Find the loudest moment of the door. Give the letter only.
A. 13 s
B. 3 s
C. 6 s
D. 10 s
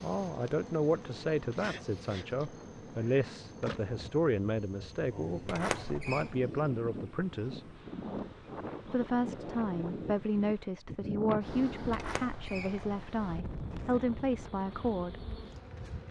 C.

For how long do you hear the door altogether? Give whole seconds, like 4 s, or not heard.
2 s.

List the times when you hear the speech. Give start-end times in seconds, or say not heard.
0.0-7.7, 8.8-15.2.